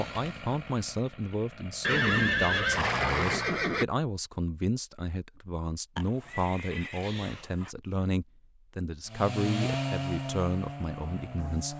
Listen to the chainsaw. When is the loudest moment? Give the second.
10 s.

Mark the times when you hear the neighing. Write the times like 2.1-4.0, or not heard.
1.8-3.9, 6.0-7.7.